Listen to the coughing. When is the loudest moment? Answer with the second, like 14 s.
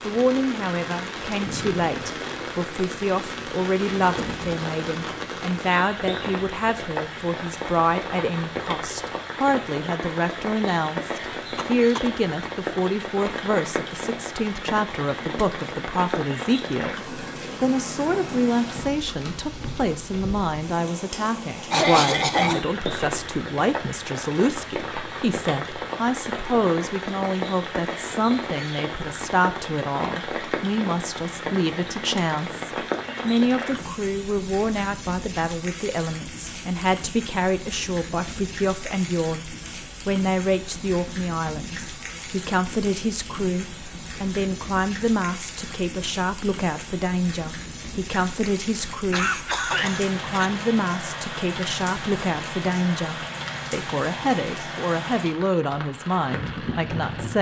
22 s.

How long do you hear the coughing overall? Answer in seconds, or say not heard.
3 s.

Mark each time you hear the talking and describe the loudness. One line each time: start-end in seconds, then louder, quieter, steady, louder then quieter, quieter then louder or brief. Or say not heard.
0.1-39.5 steady
40.0-57.3 steady.